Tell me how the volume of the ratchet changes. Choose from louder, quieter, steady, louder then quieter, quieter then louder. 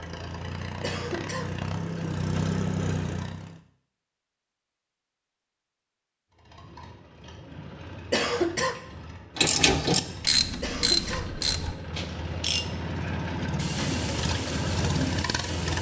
quieter.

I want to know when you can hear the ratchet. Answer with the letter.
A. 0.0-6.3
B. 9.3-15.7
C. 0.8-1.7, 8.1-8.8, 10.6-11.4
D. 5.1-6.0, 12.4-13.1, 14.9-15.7
B.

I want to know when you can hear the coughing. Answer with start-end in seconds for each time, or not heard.
0.8-1.7, 8.1-8.8, 10.6-11.4.